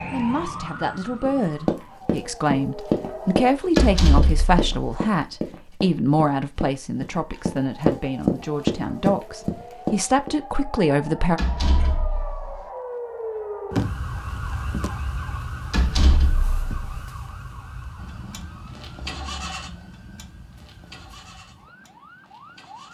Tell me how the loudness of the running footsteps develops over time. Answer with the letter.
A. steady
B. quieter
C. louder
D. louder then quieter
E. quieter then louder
E.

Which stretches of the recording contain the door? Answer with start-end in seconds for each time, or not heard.
3.8-5.0, 11.3-12.6, 15.7-16.8.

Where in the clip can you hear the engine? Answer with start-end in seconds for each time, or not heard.
17.9-22.8.